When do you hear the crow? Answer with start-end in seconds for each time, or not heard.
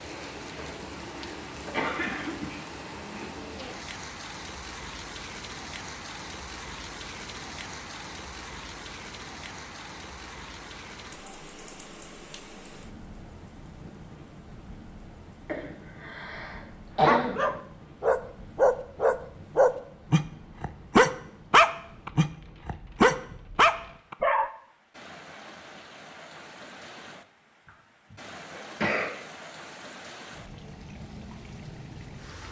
not heard.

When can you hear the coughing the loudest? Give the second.
17 s.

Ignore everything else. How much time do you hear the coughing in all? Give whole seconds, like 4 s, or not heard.
5 s.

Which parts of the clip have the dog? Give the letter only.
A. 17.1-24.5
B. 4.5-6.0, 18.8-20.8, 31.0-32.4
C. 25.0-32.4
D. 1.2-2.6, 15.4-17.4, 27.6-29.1
A.